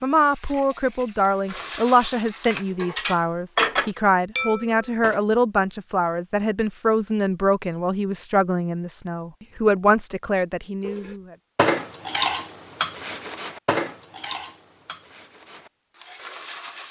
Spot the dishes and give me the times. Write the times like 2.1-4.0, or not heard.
0.0-5.2, 10.8-16.8.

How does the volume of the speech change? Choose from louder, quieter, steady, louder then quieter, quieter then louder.
steady.